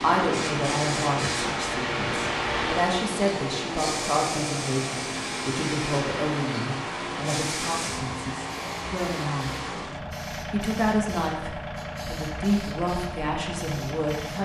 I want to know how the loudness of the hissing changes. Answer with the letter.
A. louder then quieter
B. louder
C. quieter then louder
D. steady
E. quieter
E.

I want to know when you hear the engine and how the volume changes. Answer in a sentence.
The engine can be heard from 0.0 to 14.4 s, at a steady volume.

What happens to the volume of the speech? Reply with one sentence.
The loudness of the speech stays about the same.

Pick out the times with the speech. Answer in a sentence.
You can hear the speech from 0.0 to 9.6 s and from 10.5 to 14.4 s.